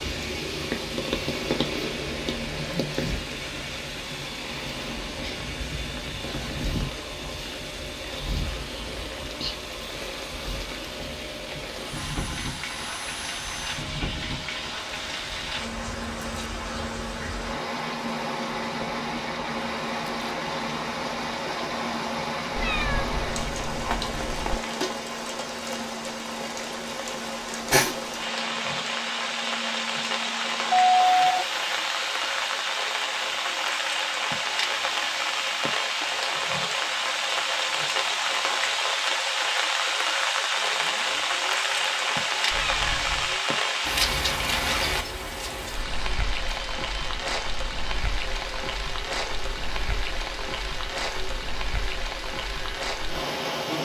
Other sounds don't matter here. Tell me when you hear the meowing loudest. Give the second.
23 s.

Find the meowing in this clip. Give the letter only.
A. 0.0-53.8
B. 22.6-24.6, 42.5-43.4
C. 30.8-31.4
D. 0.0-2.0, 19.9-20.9
B.